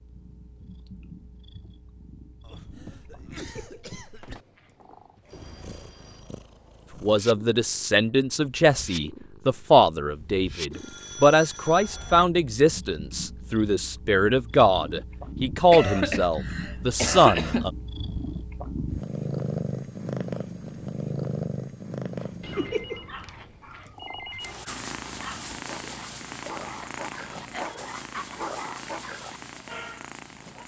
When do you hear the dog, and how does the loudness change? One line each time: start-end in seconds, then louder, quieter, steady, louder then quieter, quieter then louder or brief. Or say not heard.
22.1-30.6 louder.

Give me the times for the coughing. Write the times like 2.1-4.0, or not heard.
2.4-4.5, 15.7-17.6, 26.6-28.4.